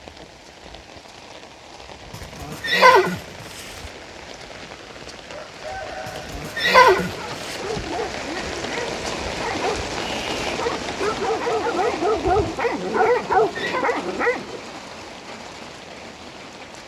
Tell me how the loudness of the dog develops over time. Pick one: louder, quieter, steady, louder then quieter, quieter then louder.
louder.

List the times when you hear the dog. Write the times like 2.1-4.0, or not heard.
7.0-14.6.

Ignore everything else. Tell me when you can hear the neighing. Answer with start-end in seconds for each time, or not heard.
2.1-3.9, 6.0-7.5, 13.1-13.8.